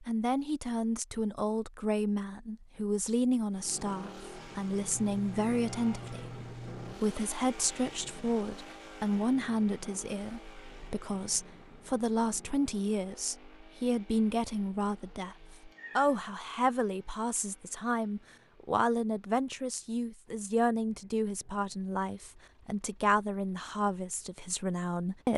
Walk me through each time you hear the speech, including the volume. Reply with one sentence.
You can hear the speech from 0.0 to 25.3 s, at a steady volume.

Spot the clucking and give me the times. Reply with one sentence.
The clucking can't be heard in this clip.